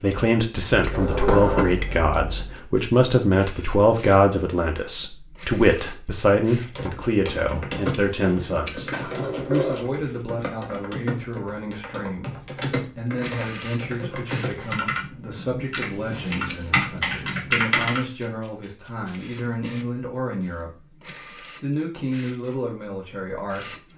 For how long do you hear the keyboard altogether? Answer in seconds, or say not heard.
11 s.